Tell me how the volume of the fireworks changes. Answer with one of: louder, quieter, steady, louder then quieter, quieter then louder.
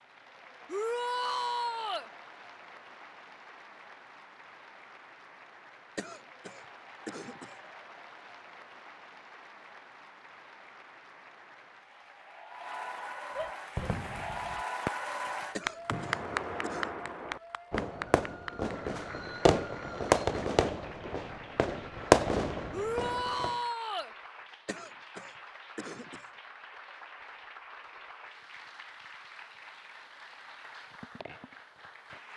louder.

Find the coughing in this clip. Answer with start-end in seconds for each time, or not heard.
6.0-7.6, 15.6-16.9, 24.6-26.3.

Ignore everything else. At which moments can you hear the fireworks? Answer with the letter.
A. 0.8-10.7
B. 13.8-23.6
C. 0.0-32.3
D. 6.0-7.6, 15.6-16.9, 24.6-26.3
B.